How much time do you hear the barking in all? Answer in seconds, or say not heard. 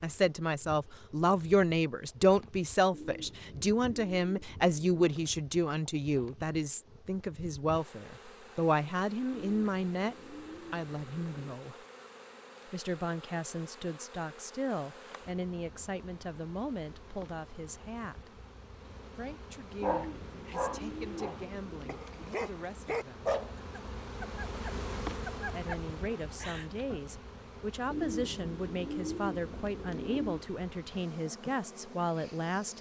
7 s.